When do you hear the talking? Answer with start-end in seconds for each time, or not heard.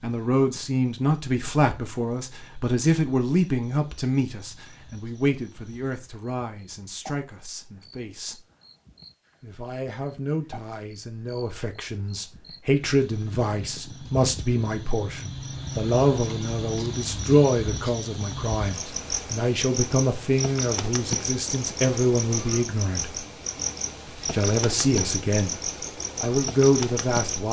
0.0-8.4, 9.4-23.2, 24.3-25.6, 26.2-27.4.